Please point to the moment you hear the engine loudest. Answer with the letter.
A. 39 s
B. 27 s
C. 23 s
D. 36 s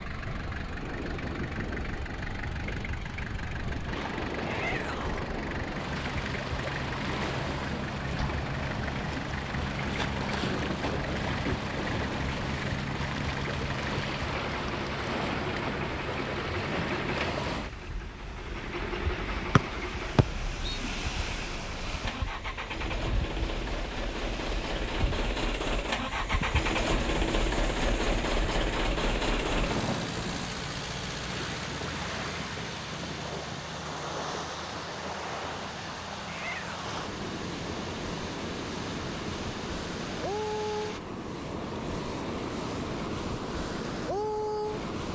B.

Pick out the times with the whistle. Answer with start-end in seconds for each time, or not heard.
19.6-20.8.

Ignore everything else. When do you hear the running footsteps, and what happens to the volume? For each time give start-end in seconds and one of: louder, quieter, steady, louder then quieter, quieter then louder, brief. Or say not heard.
not heard.